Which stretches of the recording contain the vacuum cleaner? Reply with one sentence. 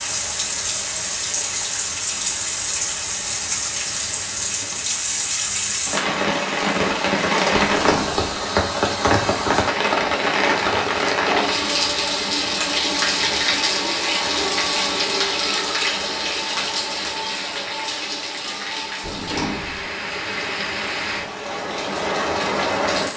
You can't hear the vacuum cleaner here.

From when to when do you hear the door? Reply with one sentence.
The door can be heard from 7.7 to 8.3 s and from 19.0 to 19.9 s.